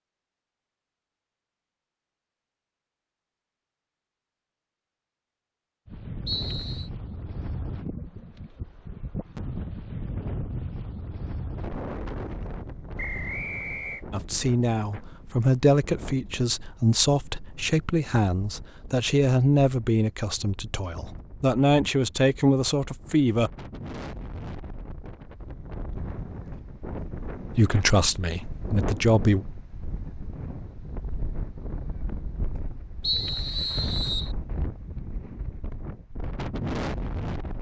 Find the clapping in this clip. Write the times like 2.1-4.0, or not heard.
not heard.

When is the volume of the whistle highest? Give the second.
33 s.